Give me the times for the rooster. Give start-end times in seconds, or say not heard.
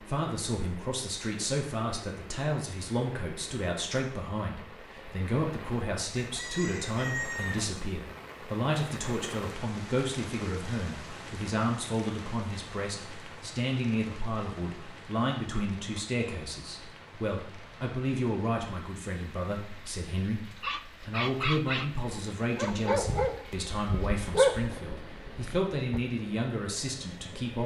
6.2-7.8.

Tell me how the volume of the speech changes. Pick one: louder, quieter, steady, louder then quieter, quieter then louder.
steady.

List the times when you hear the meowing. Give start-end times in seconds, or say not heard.
not heard.